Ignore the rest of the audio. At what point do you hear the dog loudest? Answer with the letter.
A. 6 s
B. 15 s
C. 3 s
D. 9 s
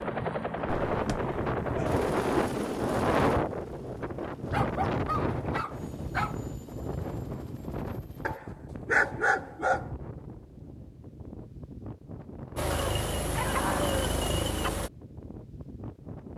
D.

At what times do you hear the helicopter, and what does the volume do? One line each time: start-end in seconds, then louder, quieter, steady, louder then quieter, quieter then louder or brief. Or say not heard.
0.0-8.4 quieter
12.6-14.9 brief.